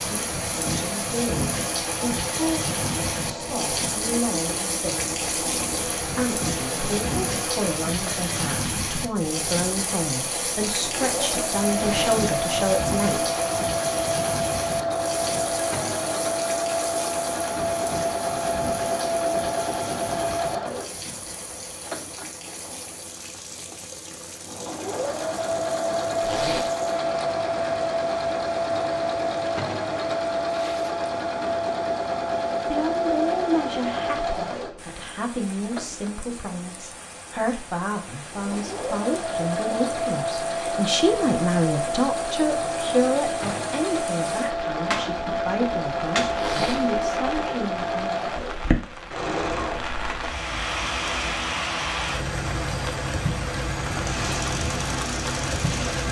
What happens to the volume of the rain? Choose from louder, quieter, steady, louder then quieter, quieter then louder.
quieter then louder.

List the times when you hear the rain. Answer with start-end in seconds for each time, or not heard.
0.0-56.0.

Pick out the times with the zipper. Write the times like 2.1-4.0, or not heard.
11.7-12.2, 26.2-26.7, 46.4-46.9.